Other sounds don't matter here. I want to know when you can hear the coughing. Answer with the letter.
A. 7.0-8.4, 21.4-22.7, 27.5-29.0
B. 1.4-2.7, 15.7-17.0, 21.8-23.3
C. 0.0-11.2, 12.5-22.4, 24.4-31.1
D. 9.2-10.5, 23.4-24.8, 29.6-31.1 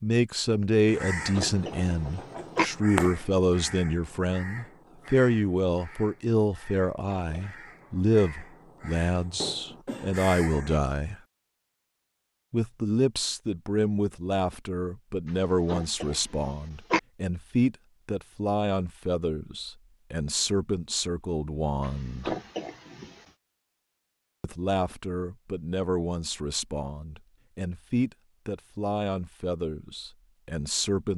B.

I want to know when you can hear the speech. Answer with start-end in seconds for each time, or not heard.
0.0-11.2, 12.5-22.4, 24.4-31.1.